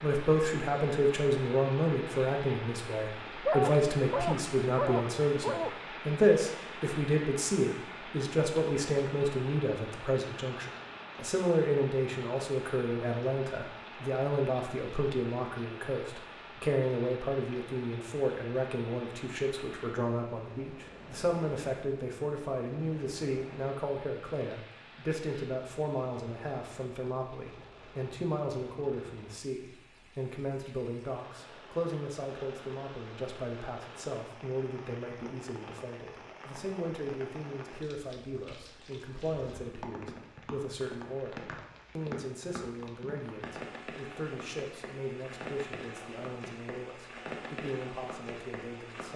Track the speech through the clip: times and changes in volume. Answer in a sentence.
You can hear the speech from 0.0 to 49.1 s, getting quieter.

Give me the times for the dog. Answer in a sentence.
You can hear the dog from 3.5 to 5.8 s.